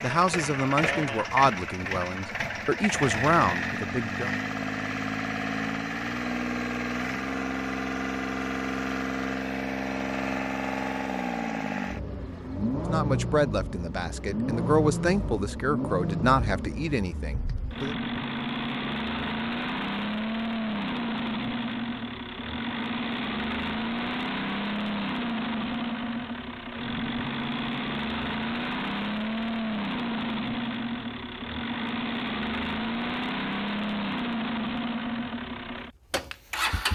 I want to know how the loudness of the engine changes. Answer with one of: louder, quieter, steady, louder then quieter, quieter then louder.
steady.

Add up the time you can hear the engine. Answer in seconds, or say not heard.
37 s.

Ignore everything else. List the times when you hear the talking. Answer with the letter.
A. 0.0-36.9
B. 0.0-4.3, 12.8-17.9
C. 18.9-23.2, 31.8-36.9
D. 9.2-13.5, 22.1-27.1
B.